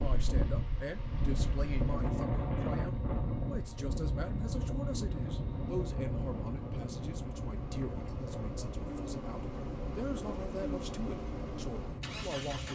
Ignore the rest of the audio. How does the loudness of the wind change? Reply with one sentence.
The loudness of the wind goes down.